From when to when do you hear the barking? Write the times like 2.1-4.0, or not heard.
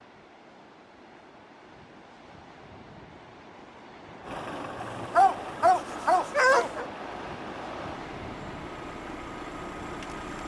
4.8-6.8.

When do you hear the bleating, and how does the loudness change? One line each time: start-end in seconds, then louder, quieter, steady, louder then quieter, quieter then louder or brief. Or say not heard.
not heard.